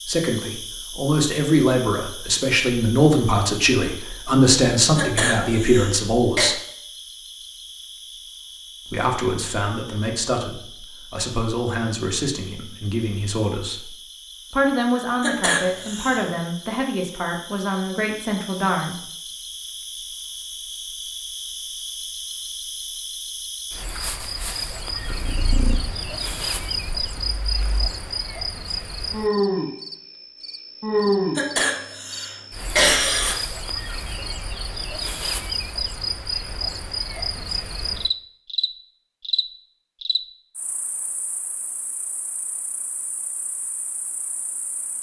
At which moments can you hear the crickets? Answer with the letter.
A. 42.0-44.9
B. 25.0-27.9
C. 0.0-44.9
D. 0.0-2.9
C.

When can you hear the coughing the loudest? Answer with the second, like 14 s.
33 s.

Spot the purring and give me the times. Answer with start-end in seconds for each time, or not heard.
25.0-27.9.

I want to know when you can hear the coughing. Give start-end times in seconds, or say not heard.
5.0-6.5, 15.2-16.2, 31.4-33.4.